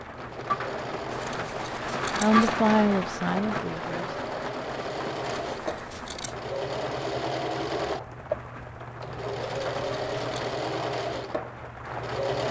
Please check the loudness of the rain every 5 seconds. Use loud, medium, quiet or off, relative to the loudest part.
loud, medium, medium.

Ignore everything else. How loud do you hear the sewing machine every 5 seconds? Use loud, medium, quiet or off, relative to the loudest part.
medium, loud, loud.